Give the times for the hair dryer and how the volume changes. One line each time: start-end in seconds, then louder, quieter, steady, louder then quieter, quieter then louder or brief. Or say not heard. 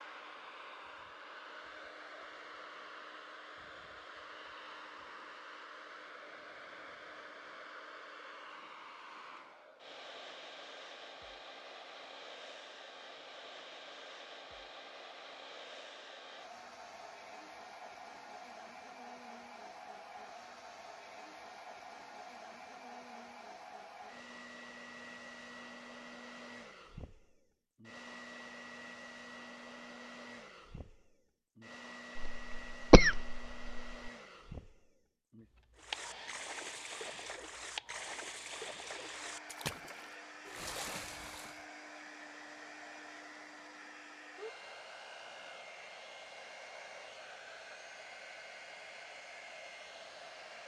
0.0-50.6 steady.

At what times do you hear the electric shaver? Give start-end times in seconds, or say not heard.
not heard.